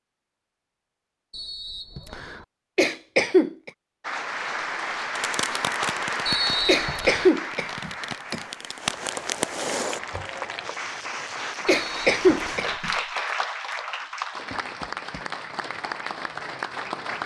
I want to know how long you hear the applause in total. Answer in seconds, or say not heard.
13 s.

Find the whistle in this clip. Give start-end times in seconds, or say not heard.
1.3-2.5, 6.2-7.3, 11.8-12.8.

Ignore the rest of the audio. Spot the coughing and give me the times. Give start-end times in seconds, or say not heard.
2.8-3.7, 6.7-8.4, 11.7-12.9.